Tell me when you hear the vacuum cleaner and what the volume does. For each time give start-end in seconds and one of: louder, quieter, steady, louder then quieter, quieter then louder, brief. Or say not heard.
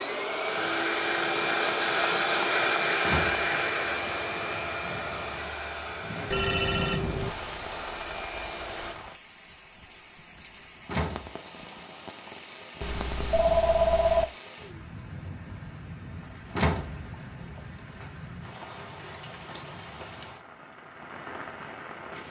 0.0-8.9 quieter.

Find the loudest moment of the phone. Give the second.
14 s.